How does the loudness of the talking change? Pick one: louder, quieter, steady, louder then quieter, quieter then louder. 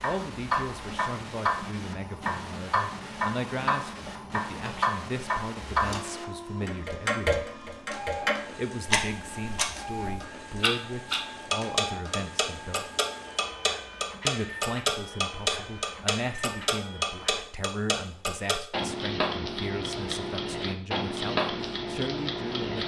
steady.